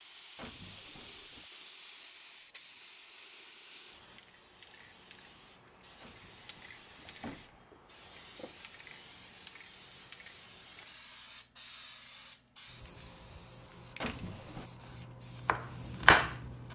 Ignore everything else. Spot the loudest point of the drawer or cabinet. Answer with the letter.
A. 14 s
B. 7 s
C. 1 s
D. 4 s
A.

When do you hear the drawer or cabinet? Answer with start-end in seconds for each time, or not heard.
0.3-1.4, 6.0-7.6, 14.0-14.7.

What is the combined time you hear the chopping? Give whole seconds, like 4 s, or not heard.
2 s.